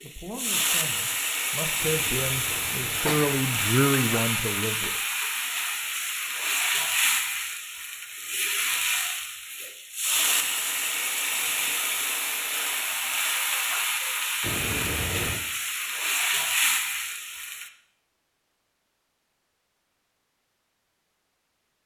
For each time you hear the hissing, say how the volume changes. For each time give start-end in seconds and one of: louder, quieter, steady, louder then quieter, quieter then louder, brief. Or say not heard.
0.0-17.7 steady.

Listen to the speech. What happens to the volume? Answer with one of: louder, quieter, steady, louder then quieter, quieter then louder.
louder.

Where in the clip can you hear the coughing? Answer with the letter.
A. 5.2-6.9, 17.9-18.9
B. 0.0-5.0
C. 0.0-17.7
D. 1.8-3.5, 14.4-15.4
D.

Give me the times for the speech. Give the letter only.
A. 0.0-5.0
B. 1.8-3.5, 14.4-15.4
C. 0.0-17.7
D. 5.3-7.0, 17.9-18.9
A.